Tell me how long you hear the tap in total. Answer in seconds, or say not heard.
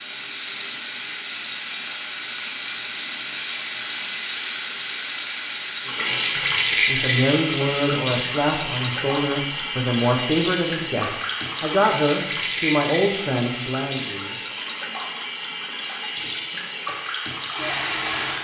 18 s.